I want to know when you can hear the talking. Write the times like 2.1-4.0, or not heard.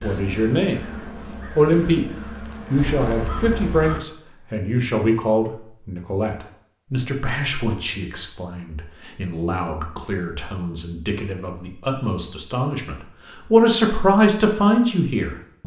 0.0-0.8, 1.6-2.0, 2.7-15.6.